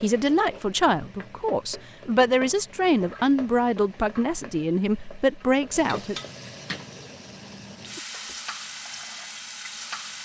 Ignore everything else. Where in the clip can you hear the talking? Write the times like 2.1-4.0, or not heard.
0.0-6.2.